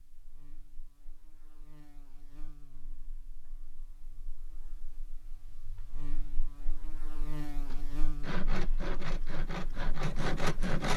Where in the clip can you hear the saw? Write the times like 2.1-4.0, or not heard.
7.7-10.9.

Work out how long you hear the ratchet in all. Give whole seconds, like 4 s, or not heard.
not heard.